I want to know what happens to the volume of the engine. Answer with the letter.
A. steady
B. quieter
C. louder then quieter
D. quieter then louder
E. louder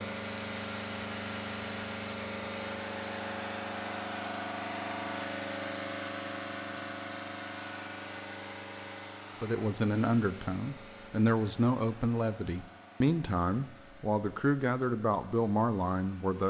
B.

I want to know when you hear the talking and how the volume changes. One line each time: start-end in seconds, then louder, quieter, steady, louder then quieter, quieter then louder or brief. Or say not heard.
9.4-16.4 steady.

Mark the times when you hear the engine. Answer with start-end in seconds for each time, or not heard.
0.0-16.4.